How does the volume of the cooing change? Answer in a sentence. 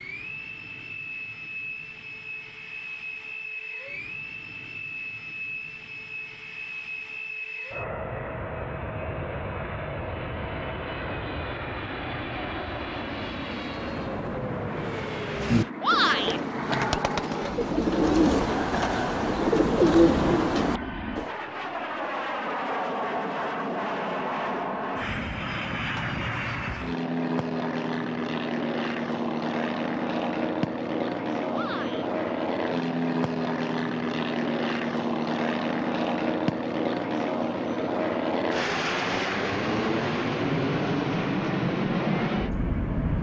The volume of the cooing goes up.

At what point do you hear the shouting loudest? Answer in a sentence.
The volume of the shouting peaks at 16 seconds.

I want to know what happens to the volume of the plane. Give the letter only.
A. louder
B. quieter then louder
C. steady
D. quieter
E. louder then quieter
A.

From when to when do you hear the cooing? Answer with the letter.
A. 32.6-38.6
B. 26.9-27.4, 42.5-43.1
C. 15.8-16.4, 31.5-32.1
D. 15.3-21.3
D.